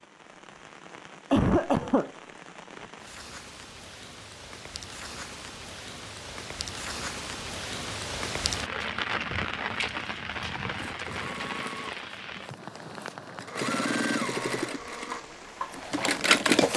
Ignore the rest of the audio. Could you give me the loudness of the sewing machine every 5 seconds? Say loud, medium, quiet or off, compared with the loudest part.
off, off, medium, loud.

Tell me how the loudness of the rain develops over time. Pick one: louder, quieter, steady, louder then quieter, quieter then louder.
louder then quieter.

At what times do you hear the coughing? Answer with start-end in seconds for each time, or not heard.
1.3-2.1.